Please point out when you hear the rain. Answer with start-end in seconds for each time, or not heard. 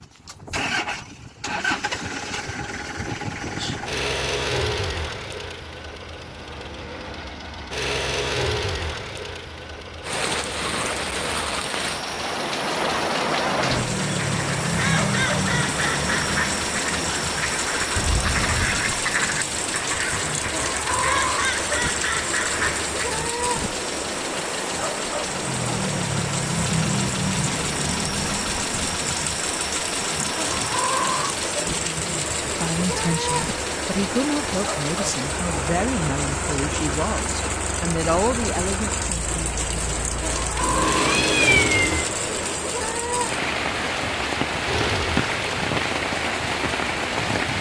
10.0-47.5.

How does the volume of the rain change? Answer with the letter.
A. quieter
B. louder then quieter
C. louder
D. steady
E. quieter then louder
D.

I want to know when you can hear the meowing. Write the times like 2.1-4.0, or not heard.
17.9-18.8, 40.6-42.0.